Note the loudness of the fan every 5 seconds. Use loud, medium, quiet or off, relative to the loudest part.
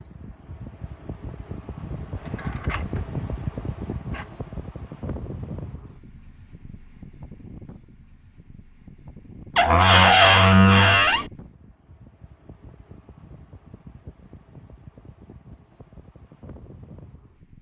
loud, medium, quiet, quiet.